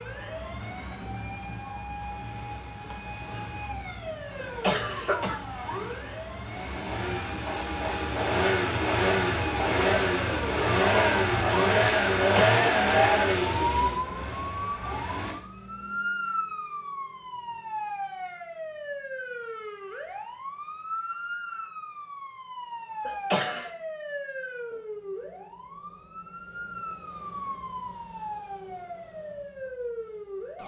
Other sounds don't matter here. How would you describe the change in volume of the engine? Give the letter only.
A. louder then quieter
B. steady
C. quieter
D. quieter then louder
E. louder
E.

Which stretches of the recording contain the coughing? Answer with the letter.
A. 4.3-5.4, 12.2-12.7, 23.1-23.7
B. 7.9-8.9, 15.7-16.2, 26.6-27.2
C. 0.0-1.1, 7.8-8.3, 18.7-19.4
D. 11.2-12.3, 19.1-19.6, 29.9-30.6
A.